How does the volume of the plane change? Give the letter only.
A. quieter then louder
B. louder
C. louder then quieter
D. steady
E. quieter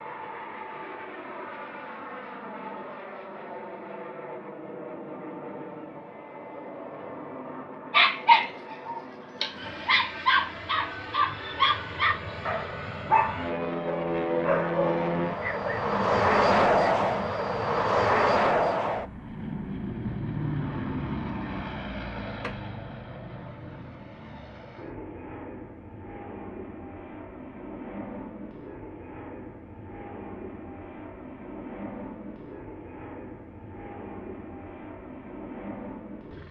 C.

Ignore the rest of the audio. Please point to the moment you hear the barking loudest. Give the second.
8 s.